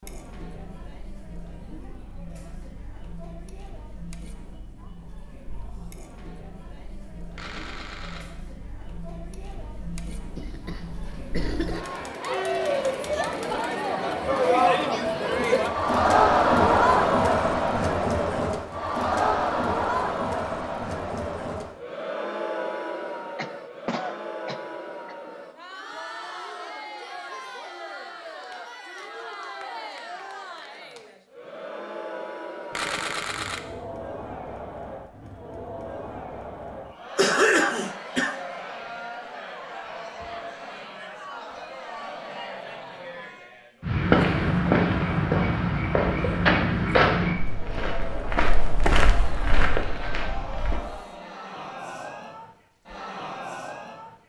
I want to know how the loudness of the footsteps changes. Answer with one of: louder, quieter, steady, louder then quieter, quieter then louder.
quieter.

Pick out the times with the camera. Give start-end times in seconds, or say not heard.
7.3-8.2, 32.7-33.6.